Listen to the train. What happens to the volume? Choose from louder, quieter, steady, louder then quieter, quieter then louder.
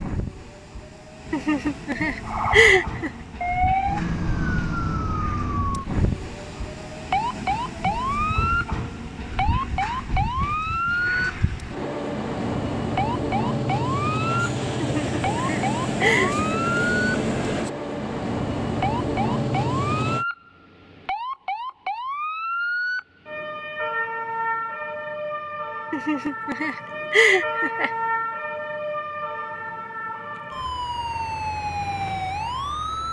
louder.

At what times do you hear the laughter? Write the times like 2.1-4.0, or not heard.
1.3-3.1, 14.8-16.4, 25.9-27.9.